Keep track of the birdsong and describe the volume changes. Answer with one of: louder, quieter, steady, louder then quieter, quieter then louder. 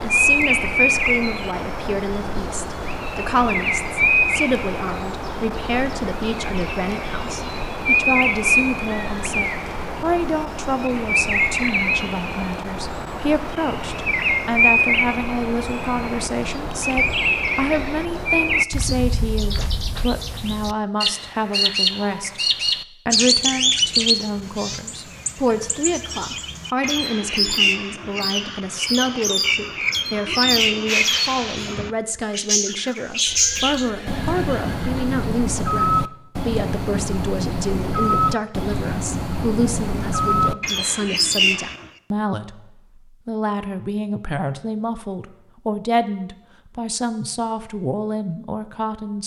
steady.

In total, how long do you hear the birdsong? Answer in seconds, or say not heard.
42 s.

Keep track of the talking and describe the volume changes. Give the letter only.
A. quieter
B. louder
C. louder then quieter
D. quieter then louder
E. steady
E.